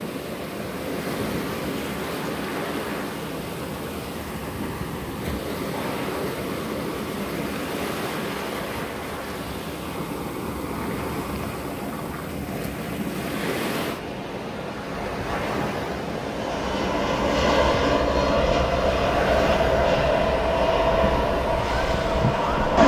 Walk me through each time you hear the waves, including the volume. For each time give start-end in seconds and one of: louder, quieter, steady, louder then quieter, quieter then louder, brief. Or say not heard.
0.0-22.8 steady.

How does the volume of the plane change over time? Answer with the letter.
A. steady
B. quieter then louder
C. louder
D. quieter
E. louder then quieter
A.